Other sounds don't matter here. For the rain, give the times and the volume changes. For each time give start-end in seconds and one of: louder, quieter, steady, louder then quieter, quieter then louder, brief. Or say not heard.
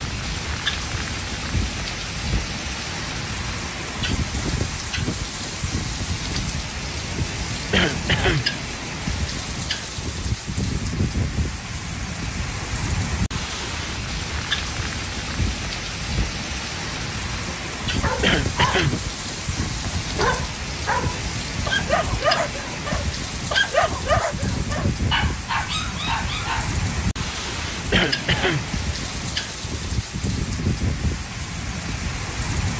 0.0-32.7 steady.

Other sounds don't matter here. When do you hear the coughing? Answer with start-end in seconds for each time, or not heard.
7.7-8.4, 18.2-18.9, 27.9-28.6.